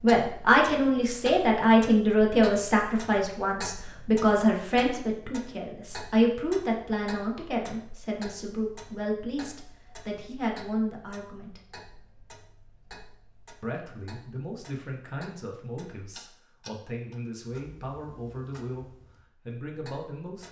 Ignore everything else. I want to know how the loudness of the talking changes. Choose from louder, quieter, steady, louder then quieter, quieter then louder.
quieter.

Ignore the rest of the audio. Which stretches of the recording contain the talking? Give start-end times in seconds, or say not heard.
0.0-11.6, 13.6-20.4.